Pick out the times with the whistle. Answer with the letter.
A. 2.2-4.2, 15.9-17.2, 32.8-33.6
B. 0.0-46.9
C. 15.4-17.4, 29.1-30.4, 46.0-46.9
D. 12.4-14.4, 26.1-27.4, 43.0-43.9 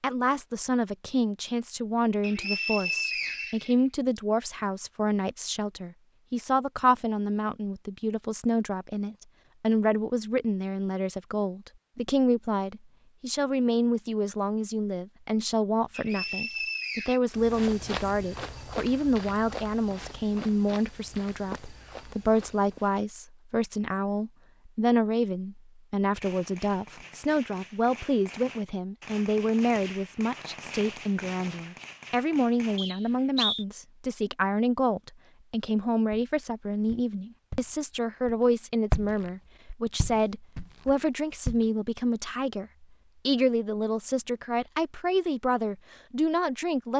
A.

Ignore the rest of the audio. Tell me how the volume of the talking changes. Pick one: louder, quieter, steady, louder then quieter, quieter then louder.
steady.